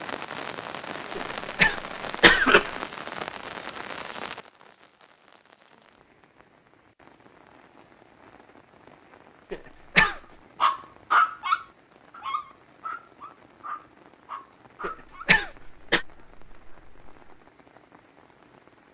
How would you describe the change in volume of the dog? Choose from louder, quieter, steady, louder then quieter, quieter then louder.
quieter.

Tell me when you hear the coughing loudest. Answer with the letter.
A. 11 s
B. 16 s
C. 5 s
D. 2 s
D.